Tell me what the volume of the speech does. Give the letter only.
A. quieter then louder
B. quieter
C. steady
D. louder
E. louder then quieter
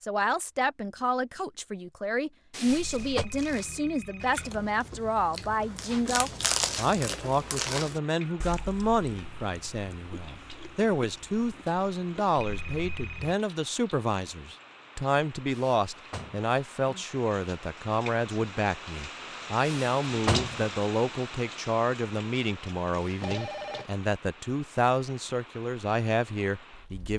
C.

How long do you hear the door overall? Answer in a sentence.
You can hear the door for 3 seconds altogether.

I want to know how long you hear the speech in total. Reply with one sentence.
The speech can be heard for 27 seconds in total.